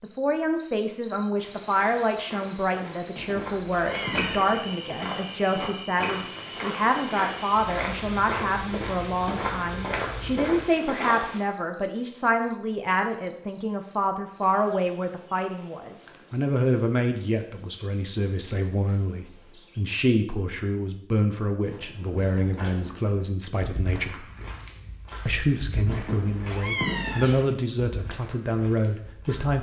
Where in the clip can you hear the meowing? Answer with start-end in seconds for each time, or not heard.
3.1-4.4, 25.9-27.5.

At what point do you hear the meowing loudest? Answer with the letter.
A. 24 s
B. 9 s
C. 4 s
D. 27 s
D.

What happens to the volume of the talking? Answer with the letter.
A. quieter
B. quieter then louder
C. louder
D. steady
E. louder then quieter
D.